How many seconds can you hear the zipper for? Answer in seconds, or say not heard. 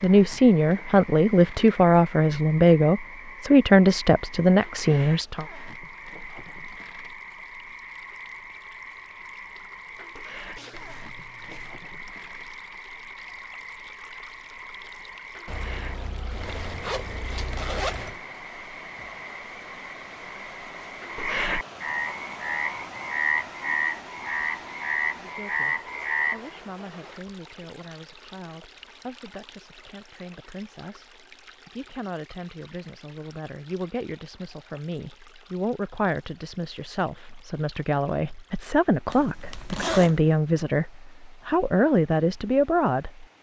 5 s.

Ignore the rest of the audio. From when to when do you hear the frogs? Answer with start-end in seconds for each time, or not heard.
0.0-26.6.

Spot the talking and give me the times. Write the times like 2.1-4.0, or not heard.
0.0-5.5, 25.2-43.3.